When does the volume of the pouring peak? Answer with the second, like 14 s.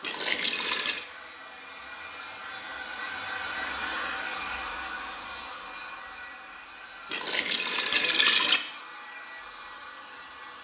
8 s.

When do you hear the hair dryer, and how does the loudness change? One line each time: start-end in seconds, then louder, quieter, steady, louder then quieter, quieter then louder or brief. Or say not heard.
0.0-10.5 louder then quieter.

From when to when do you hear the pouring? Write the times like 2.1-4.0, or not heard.
0.0-1.1, 7.1-8.6.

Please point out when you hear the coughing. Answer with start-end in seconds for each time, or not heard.
not heard.